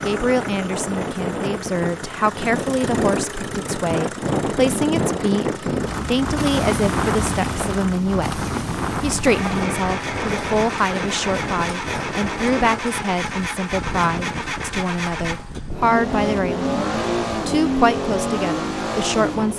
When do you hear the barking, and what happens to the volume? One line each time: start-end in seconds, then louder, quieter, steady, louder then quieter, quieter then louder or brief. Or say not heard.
not heard.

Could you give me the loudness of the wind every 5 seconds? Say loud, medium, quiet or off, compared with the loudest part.
loud, loud, medium, medium.